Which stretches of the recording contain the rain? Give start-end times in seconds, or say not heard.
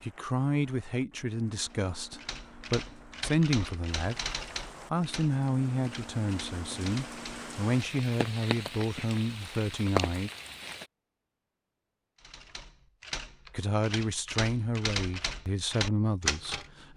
0.0-10.9.